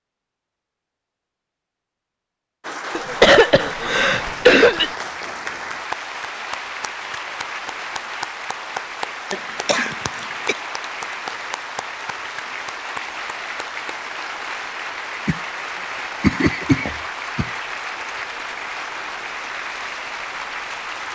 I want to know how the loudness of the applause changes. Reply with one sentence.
The loudness of the applause stays about the same.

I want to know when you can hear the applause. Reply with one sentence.
The applause can be heard from 2.6 to 21.1 s.